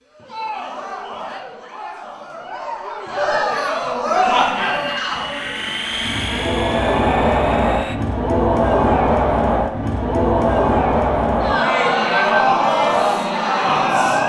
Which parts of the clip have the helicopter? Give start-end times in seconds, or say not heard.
4.3-8.0.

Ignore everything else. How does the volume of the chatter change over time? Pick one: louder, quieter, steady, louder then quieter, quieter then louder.
louder.